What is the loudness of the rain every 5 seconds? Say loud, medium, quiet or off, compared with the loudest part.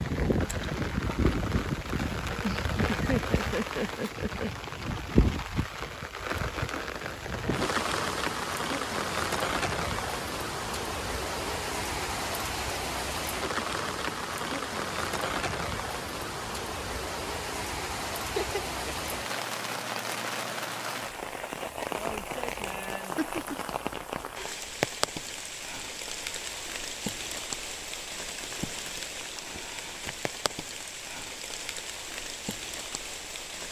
loud, loud, loud, loud, loud, medium, medium.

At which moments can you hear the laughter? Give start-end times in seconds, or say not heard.
2.4-4.5, 18.3-19.8, 23.1-23.6.